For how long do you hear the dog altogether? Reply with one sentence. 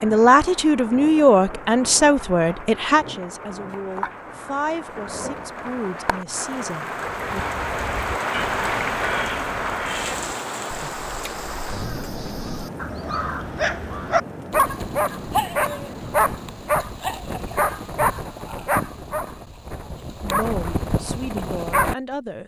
You can hear the dog for 9 seconds altogether.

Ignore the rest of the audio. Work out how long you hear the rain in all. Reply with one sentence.
You can hear the rain for 17 seconds altogether.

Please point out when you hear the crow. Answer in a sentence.
You can hear the crow from 7.2 to 14.2 s.